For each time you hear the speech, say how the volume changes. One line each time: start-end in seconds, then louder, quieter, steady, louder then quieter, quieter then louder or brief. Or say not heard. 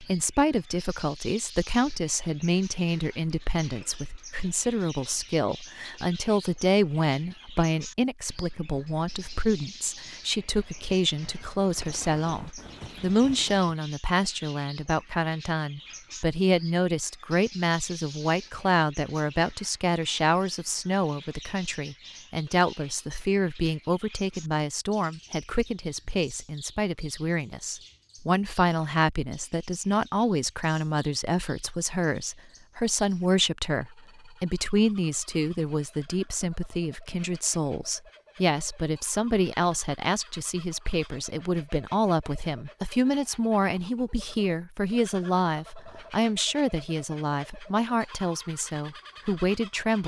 0.0-50.0 steady.